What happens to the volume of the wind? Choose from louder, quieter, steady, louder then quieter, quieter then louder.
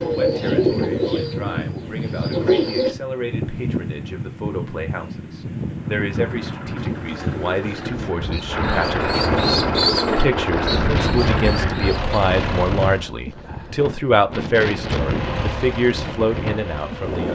steady.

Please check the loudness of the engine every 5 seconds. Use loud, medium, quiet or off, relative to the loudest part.
off, loud, loud, medium.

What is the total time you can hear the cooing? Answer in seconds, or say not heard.
8 s.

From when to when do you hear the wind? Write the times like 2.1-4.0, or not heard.
0.0-17.2.